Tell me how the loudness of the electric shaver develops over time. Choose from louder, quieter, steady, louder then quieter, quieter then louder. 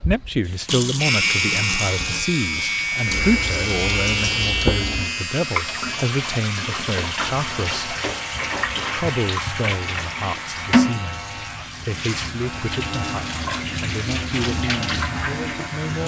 quieter.